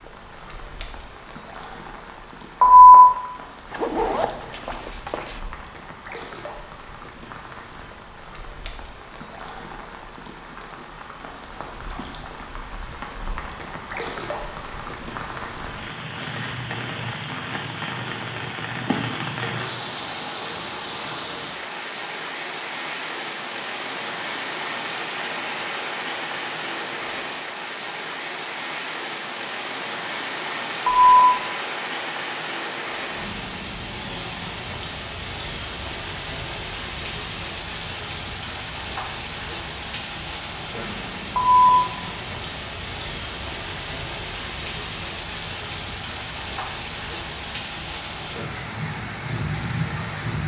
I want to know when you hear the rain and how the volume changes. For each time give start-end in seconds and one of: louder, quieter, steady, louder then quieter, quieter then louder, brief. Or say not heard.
0.0-50.4 louder.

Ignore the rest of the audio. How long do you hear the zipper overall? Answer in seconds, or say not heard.
2 s.